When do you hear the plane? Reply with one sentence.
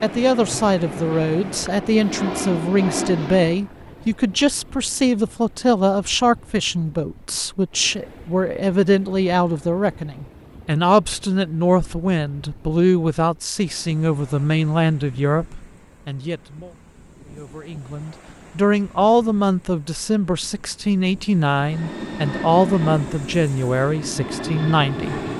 The plane can be heard from 0.2 to 3.6 s and from 21.6 to 25.3 s.